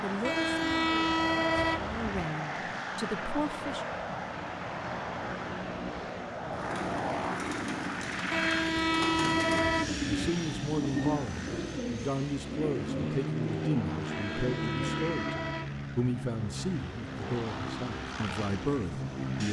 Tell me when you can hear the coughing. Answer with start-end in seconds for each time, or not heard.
not heard.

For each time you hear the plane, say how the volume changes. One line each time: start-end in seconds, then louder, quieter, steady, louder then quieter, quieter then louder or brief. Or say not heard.
0.0-19.4 steady.